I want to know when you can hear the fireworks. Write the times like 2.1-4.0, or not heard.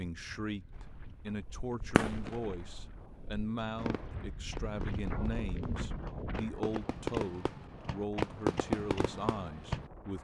0.8-9.9.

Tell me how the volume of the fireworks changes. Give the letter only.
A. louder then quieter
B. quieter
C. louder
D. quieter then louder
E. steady
D.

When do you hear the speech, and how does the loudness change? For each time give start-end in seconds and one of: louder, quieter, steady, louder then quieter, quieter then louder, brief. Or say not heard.
0.0-10.1 steady.